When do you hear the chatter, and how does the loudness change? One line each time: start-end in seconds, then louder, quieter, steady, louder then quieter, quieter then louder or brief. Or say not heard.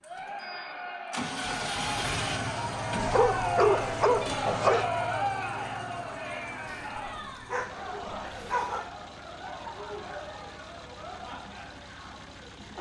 0.0-12.7 louder then quieter.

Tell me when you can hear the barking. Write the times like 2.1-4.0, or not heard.
3.0-4.8, 6.7-8.9.